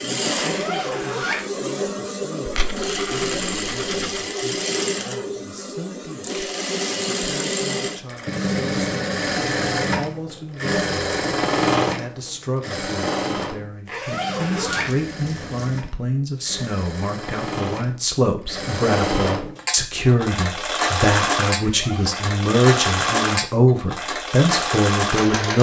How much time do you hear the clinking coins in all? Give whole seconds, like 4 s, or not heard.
3 s.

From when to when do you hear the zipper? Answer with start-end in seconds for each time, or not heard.
0.4-1.4, 13.8-14.9, 21.6-22.2.